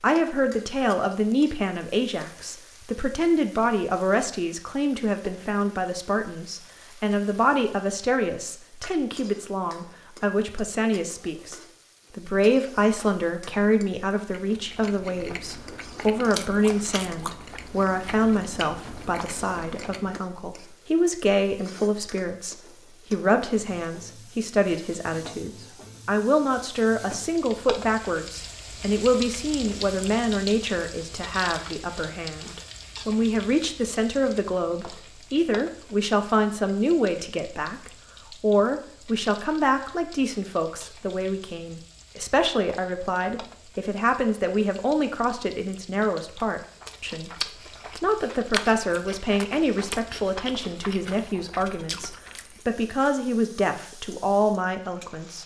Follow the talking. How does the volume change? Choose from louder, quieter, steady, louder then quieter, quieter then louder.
steady.